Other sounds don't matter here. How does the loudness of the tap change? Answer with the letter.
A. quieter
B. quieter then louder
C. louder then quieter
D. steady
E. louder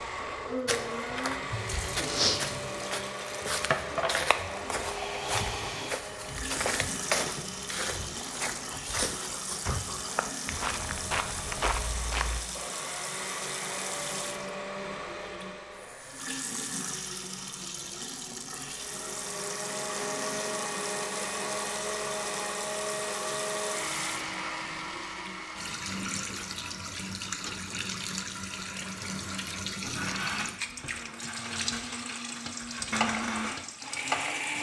D.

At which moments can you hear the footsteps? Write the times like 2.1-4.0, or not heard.
0.7-12.4.